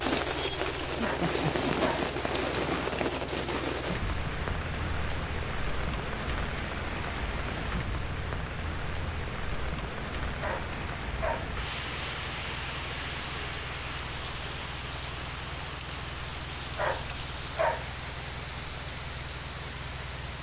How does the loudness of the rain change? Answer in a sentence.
The volume of the rain goes down.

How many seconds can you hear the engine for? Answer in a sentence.
The engine can be heard for 20 seconds in total.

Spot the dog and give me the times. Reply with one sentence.
The dog can be heard from 1.0 to 2.1 s, from 10.4 to 11.6 s and from 16.8 to 17.9 s.